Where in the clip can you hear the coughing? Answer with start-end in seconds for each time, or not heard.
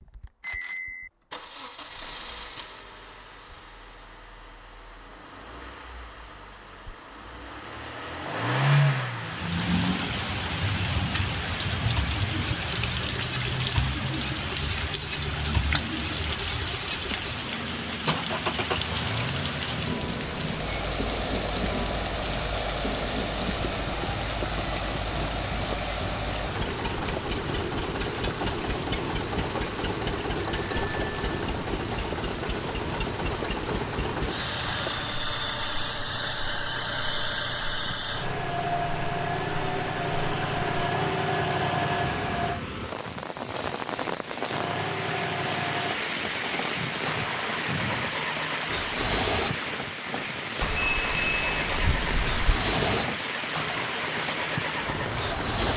not heard.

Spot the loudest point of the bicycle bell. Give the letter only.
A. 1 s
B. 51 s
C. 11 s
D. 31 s
B.